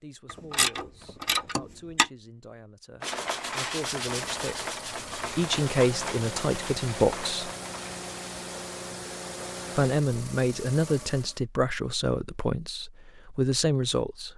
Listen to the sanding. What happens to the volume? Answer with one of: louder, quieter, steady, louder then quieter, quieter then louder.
quieter.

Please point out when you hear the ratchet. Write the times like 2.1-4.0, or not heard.
0.2-2.0.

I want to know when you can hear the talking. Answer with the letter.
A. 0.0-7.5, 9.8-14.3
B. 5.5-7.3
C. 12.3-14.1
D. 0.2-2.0
A.